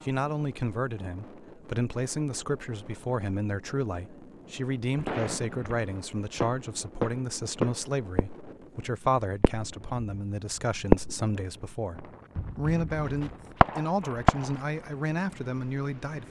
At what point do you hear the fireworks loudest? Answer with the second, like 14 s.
11 s.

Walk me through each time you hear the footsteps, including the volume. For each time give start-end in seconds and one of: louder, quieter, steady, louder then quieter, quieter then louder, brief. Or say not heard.
not heard.